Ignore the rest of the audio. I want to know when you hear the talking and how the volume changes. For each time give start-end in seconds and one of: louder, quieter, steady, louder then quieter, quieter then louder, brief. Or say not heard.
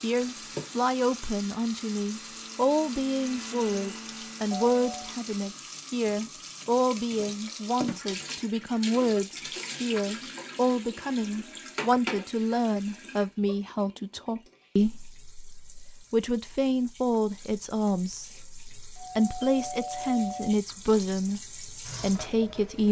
0.0-22.8 steady.